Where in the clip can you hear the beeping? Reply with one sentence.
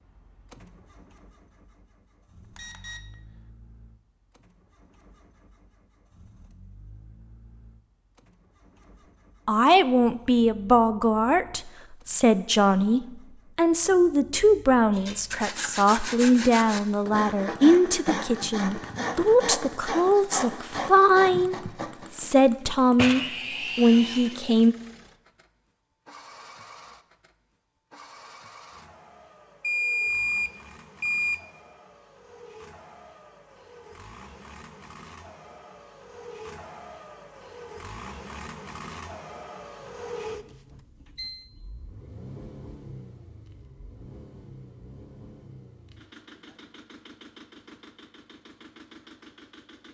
You can hear the beeping from 2.4 to 3.4 s, from 29.6 to 31.5 s and from 39.8 to 41.5 s.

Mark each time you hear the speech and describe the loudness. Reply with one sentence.
The speech can be heard from 9.4 to 24.8 s, at a steady volume.